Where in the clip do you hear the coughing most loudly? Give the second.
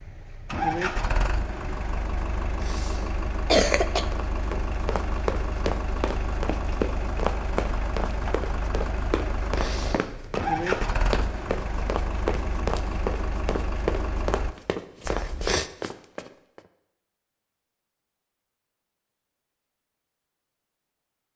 4 s.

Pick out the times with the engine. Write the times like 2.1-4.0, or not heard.
0.0-14.6.